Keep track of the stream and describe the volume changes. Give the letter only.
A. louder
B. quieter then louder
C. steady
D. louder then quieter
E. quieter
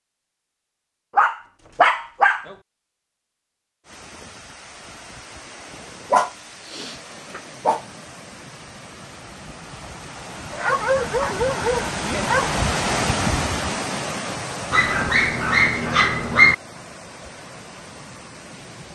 D.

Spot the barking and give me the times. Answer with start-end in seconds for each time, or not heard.
1.1-2.5, 6.1-7.8, 10.5-12.6, 14.7-16.6.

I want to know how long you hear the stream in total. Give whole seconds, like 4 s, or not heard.
15 s.